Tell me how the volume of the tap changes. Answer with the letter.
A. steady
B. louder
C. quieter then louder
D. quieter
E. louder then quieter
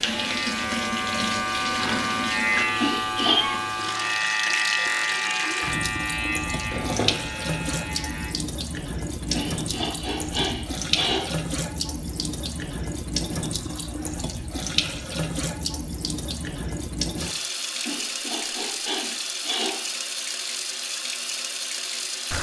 A.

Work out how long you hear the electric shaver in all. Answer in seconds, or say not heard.
8 s.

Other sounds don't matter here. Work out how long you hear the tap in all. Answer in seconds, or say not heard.
22 s.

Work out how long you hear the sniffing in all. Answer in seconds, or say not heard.
5 s.